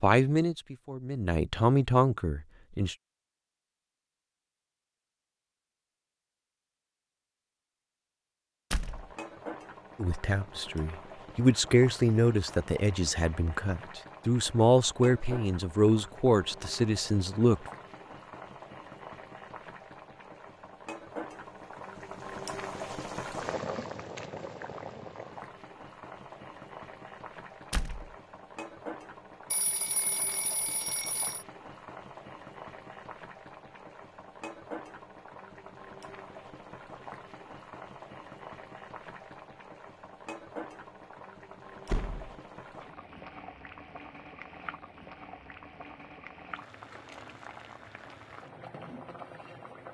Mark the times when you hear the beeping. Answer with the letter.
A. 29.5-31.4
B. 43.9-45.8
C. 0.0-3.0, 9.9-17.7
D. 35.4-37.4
A.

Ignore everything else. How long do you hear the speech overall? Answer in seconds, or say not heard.
11 s.